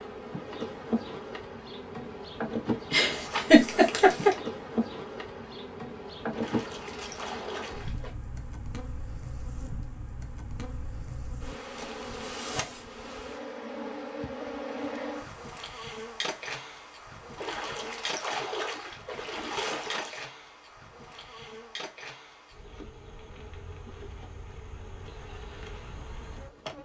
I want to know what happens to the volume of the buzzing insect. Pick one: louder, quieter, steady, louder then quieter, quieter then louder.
quieter.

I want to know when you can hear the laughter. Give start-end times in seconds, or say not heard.
2.9-4.3.